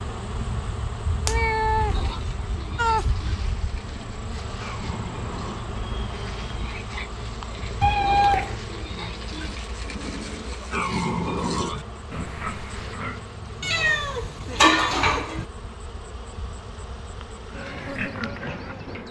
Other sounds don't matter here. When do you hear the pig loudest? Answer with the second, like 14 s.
11 s.